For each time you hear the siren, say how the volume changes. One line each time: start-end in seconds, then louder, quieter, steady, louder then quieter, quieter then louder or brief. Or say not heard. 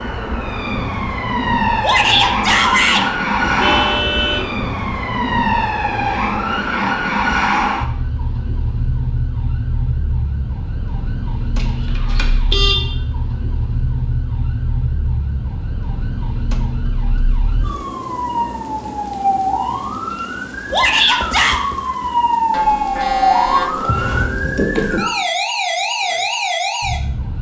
0.0-27.3 quieter then louder.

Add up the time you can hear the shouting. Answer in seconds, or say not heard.
2 s.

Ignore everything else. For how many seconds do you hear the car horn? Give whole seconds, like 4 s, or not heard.
4 s.